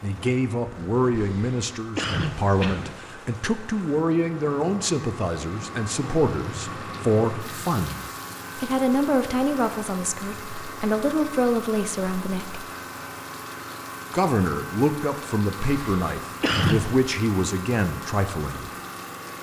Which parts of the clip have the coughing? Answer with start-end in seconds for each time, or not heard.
1.1-3.0, 15.7-17.0.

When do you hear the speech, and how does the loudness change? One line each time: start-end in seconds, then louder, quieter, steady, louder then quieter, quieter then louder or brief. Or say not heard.
0.0-12.7 steady
14.1-18.7 steady.